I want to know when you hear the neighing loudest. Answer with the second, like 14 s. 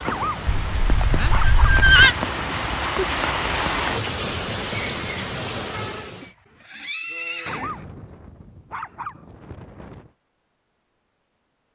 2 s.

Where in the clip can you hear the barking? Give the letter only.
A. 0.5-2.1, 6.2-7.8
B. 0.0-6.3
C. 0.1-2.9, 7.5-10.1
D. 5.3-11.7
C.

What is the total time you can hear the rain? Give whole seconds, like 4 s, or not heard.
6 s.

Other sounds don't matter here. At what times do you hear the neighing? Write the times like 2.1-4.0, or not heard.
0.5-2.1, 6.2-7.8.